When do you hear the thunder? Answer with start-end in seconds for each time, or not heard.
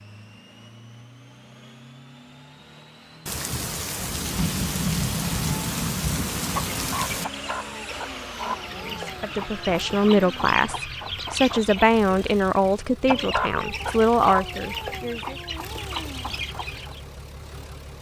3.2-7.2.